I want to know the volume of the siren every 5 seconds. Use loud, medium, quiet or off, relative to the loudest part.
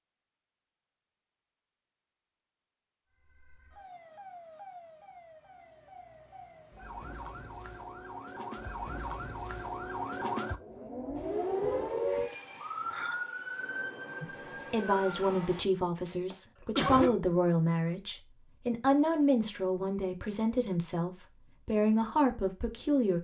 quiet, medium, loud, off, off.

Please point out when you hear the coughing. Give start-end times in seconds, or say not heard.
16.3-17.2.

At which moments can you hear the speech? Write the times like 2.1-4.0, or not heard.
14.2-23.1.